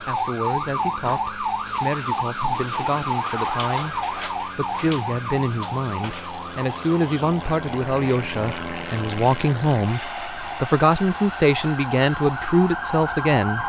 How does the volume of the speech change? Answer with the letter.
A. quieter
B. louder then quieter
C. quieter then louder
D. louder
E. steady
D.